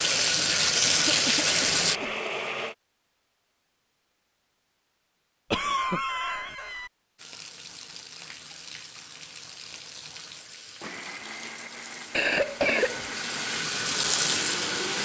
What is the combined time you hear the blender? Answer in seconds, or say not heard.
7 s.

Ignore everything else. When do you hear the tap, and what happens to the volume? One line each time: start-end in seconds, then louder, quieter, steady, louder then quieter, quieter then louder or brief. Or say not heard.
0.0-2.0 brief
7.2-15.0 louder.